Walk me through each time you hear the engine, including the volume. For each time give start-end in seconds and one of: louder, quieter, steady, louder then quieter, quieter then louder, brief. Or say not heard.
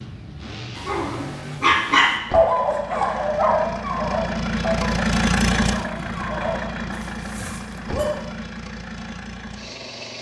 0.0-10.1 louder then quieter.